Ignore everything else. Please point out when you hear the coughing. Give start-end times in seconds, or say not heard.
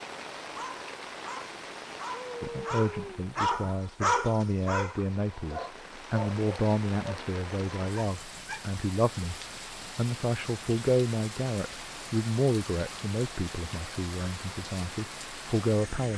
not heard.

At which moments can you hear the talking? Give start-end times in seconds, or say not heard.
2.4-16.1.